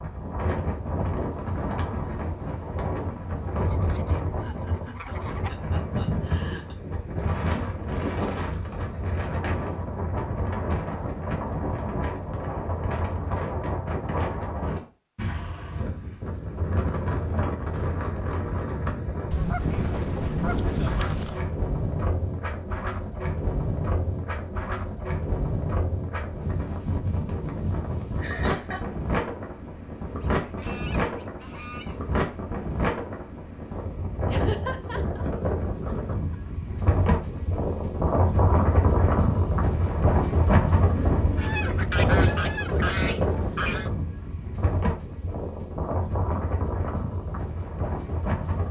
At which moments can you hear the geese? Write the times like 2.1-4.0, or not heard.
3.5-5.5, 19.3-21.5, 30.2-32.0, 41.4-43.9.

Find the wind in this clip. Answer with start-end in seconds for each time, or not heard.
0.0-48.6.